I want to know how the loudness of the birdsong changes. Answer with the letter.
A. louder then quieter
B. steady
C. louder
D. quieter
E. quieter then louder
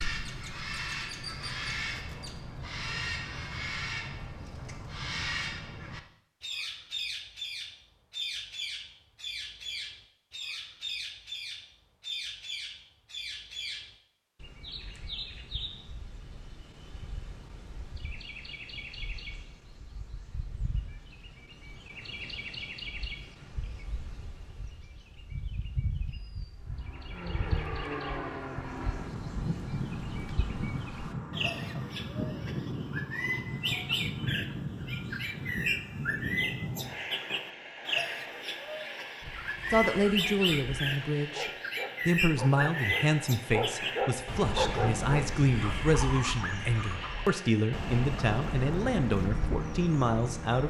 E.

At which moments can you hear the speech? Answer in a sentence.
You can hear the speech from 39.7 to 50.6 s.